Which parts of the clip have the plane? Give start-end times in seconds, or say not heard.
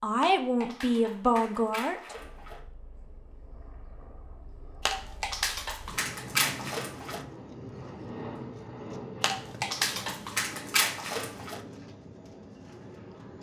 2.1-13.3.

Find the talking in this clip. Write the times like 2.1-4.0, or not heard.
0.0-2.0.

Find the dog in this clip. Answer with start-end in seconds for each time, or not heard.
0.2-2.6, 4.8-7.2, 9.2-11.6.